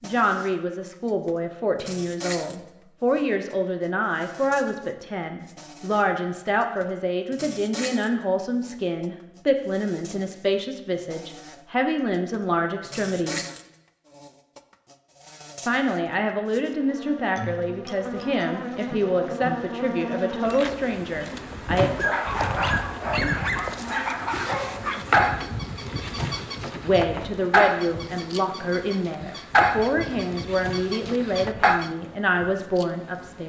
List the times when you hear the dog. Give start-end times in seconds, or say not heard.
21.8-31.9.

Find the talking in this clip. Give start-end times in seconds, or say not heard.
0.0-13.4, 15.7-21.9, 26.8-33.4.